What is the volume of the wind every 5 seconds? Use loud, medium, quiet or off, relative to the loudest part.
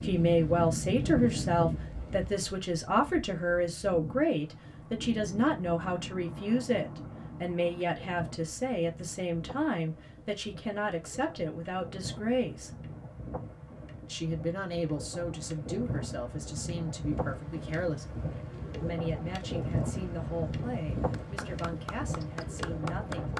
loud, medium, medium, loud, loud.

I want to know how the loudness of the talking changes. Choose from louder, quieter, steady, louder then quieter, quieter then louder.
quieter.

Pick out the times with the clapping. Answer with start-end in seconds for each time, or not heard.
21.1-23.3.